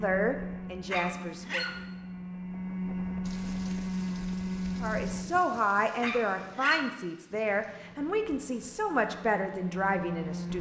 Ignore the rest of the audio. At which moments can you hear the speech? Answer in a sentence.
You can hear the speech from 0.0 to 1.6 s and from 4.8 to 10.5 s.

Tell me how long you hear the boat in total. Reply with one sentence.
You can hear the boat for 8 seconds altogether.